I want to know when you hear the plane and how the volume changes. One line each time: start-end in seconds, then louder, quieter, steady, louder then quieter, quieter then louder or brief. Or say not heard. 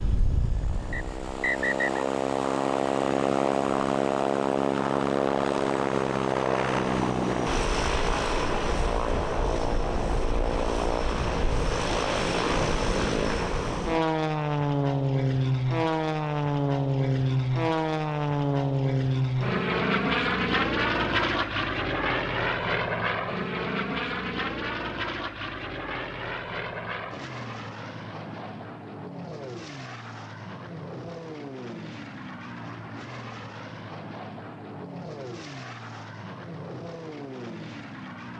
0.0-38.3 quieter.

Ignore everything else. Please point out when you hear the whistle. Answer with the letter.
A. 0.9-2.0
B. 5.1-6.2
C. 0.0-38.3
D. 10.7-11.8
A.